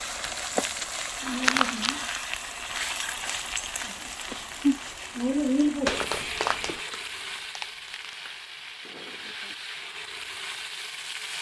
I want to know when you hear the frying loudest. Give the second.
5 s.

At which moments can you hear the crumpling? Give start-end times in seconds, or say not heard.
1.4-2.0, 5.8-8.2.